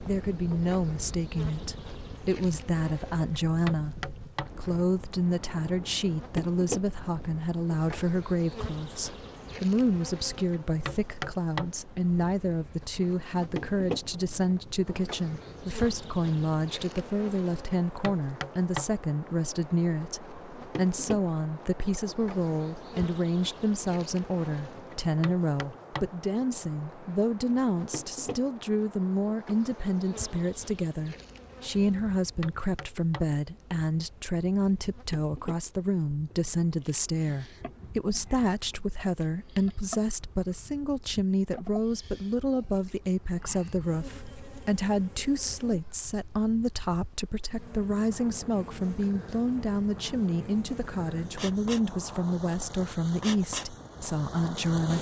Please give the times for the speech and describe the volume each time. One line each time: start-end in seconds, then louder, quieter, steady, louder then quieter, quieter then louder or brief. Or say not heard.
0.0-54.9 steady.